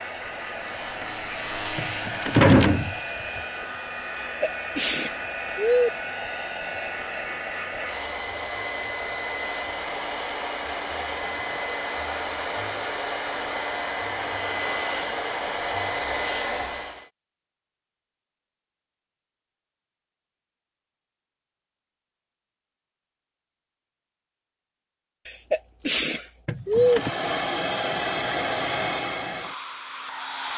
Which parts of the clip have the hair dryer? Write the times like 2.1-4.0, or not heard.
0.0-17.1, 26.8-30.5.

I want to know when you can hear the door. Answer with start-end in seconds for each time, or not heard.
1.8-3.4, 26.4-27.1.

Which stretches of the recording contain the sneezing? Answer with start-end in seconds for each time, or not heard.
4.2-5.9, 25.2-27.0.